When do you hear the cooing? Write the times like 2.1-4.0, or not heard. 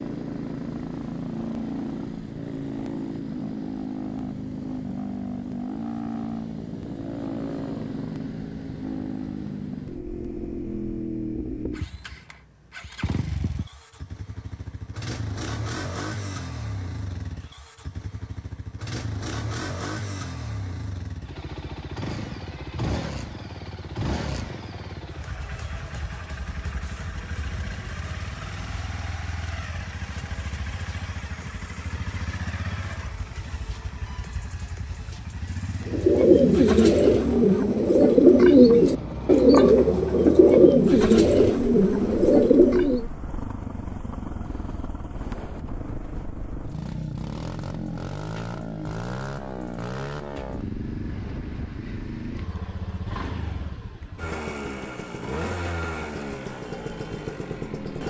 35.9-43.0.